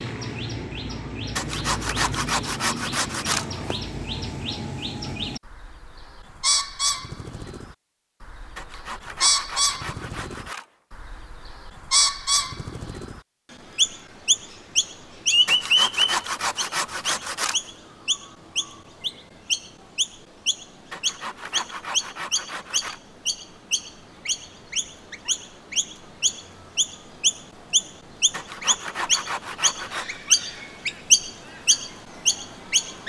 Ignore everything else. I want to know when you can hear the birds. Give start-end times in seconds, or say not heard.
0.0-33.0.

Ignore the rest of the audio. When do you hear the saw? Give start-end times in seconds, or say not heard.
1.4-3.8, 8.6-10.7, 15.4-17.6, 20.9-23.0, 28.3-30.2.